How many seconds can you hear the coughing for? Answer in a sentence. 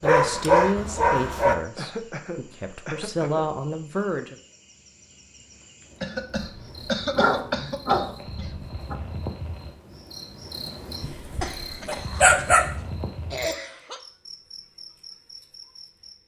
The coughing can be heard for 7 seconds in total.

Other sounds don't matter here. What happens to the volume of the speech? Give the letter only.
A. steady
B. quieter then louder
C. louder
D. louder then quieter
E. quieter
B.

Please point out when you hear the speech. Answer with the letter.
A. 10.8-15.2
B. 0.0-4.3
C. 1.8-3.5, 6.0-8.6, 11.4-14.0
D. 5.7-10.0
B.